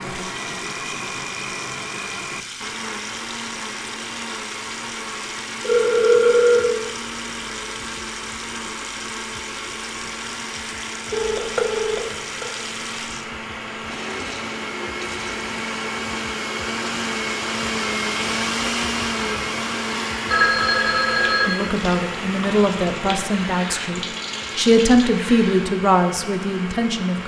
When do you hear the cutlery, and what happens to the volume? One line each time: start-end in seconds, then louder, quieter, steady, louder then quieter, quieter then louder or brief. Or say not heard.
not heard.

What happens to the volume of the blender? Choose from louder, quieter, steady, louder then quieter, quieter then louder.
louder then quieter.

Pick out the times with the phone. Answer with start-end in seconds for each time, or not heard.
5.6-6.8, 11.1-12.4, 20.3-21.7.